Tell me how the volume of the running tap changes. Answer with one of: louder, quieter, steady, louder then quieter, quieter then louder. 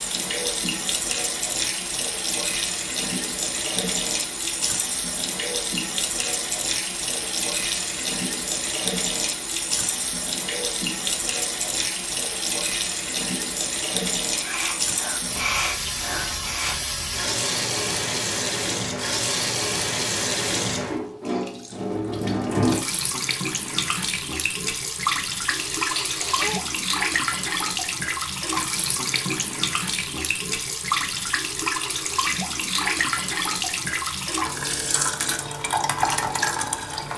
steady.